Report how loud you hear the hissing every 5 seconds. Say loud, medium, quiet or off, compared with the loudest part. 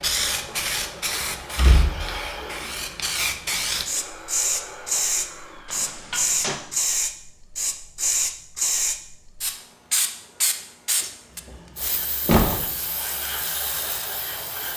loud, loud, medium.